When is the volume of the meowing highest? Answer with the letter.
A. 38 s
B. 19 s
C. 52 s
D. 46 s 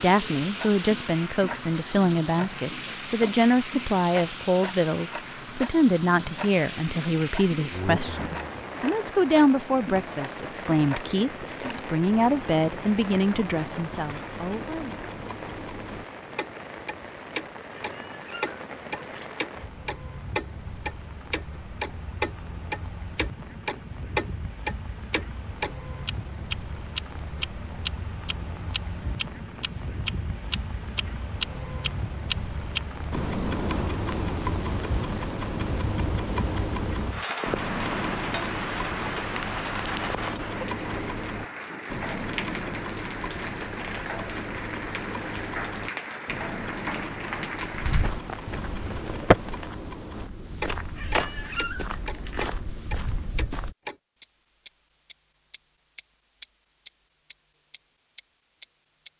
C.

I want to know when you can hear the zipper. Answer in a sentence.
The zipper can't be heard in this clip.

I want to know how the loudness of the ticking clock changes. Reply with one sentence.
The loudness of the ticking clock goes up, then down.